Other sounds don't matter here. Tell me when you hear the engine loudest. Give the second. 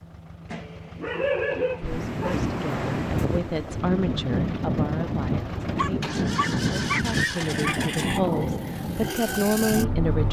8 s.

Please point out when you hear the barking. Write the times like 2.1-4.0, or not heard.
0.5-2.4, 5.8-7.9.